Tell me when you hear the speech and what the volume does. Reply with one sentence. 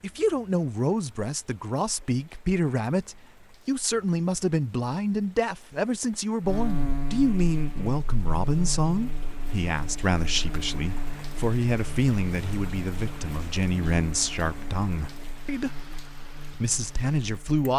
The speech can be heard from 0.0 to 17.7 s, at a steady volume.